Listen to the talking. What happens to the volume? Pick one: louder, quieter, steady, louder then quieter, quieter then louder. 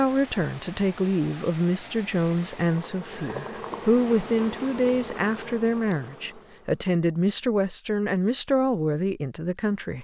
steady.